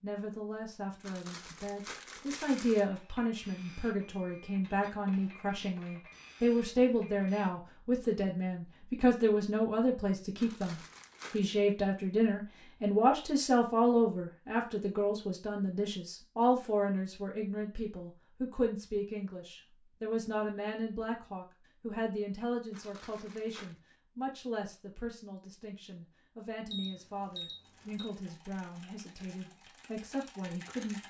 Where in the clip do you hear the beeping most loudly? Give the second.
27 s.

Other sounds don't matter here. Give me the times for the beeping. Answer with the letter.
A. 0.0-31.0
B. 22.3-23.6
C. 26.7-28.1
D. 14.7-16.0
C.